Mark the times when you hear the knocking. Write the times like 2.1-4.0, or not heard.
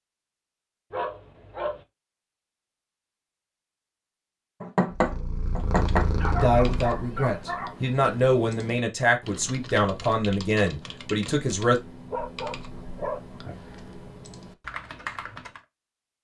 4.6-6.1.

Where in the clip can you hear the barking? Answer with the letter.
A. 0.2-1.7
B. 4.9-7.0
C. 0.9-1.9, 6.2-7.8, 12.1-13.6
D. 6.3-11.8
C.